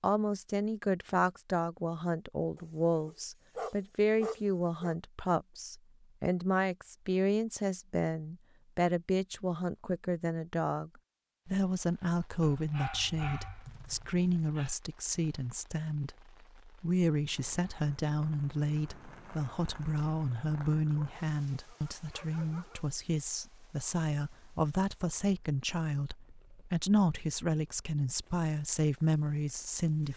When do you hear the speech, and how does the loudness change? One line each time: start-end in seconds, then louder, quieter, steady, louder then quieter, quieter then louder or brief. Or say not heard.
0.0-30.1 steady.